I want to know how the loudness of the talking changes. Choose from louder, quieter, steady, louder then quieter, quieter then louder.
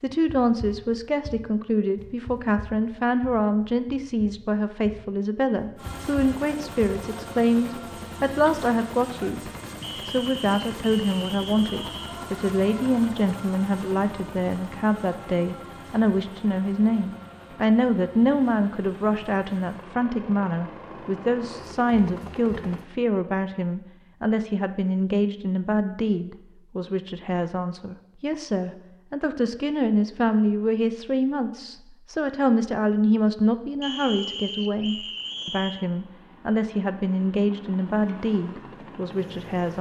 steady.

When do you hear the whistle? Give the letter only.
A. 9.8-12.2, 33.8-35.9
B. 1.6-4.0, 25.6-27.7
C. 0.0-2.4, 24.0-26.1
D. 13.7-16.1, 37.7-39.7
A.